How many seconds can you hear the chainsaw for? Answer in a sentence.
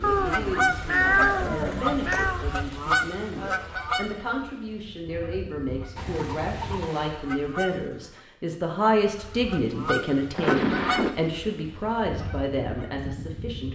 The chainsaw can't be heard in this clip.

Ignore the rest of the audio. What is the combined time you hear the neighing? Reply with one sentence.
You can hear the neighing for 4 seconds altogether.